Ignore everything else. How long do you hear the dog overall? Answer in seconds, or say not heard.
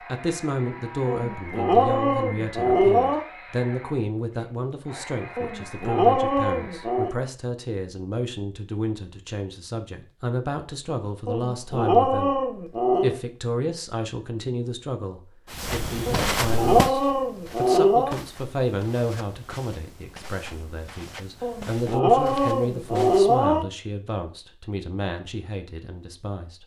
10 s.